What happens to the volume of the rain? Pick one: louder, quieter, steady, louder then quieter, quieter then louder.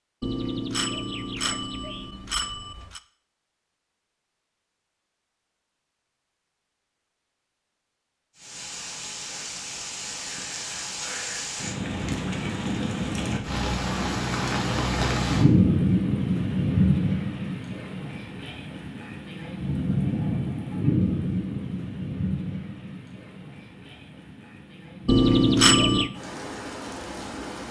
louder then quieter.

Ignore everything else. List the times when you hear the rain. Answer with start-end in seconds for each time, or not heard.
8.3-27.6.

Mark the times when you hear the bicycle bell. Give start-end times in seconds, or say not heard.
0.2-3.0, 25.1-26.1.